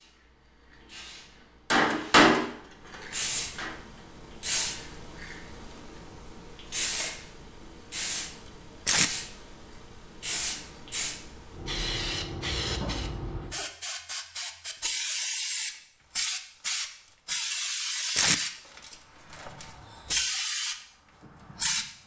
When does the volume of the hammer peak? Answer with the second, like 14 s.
2 s.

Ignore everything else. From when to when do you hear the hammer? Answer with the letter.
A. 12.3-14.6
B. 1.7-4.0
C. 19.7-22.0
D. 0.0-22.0
B.